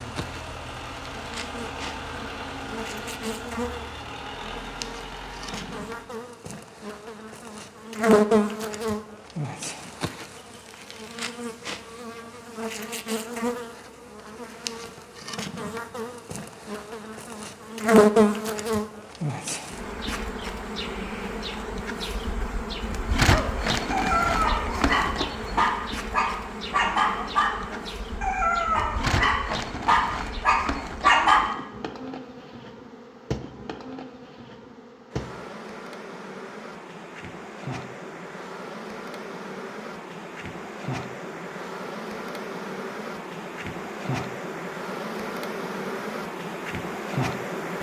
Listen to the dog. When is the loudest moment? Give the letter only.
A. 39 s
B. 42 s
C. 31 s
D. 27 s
C.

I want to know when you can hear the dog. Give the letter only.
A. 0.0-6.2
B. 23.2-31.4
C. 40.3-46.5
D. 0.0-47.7
B.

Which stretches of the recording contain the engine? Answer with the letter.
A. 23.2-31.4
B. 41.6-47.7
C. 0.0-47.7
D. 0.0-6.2
D.